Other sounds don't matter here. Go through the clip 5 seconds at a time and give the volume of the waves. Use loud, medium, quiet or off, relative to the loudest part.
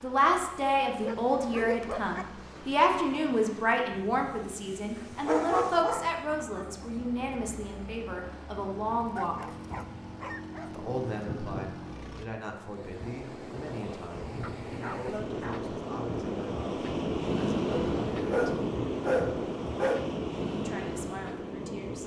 quiet, quiet, medium, loud, loud.